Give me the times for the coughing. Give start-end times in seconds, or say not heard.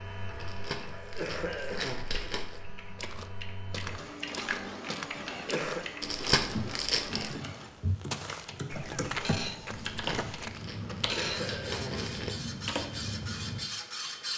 0.9-2.0, 5.3-5.9, 10.9-12.1.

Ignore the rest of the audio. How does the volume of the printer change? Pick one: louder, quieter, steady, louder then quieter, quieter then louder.
louder.